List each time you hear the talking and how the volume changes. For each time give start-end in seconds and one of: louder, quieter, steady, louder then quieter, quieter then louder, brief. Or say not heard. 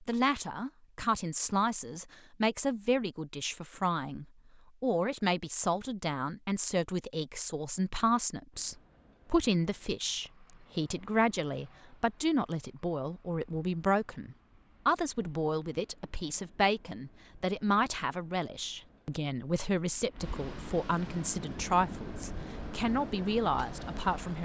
0.0-24.4 steady.